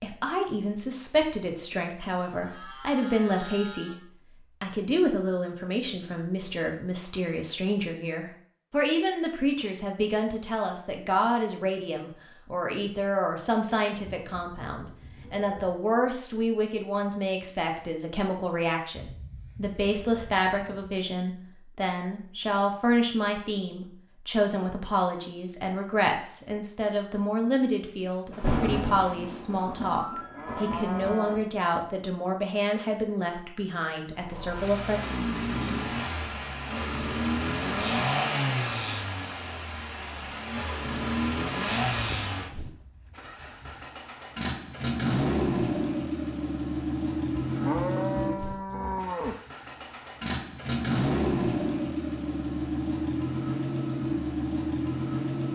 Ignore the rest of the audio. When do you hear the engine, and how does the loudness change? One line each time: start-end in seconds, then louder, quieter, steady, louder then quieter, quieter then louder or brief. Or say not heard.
34.1-55.5 steady.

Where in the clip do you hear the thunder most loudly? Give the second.
29 s.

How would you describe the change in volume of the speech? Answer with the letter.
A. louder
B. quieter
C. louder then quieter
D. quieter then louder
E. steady
E.